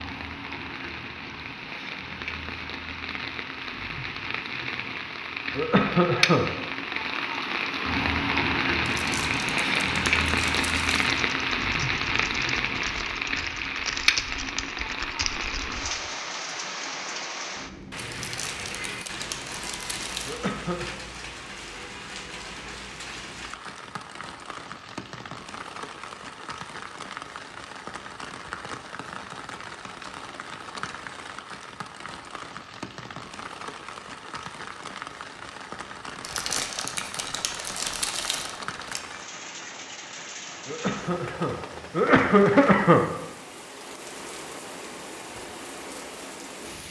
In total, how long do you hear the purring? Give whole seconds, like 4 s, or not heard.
not heard.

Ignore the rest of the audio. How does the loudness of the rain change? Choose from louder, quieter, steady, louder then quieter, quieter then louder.
quieter.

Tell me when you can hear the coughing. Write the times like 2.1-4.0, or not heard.
5.5-6.5, 20.2-20.9, 40.6-43.0.